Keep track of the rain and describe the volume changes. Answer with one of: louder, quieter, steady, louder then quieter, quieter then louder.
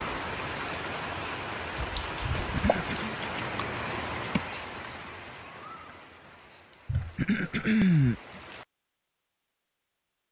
quieter.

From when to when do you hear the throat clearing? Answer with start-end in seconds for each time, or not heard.
2.4-3.1, 6.8-8.4.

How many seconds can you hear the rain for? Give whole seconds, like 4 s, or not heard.
9 s.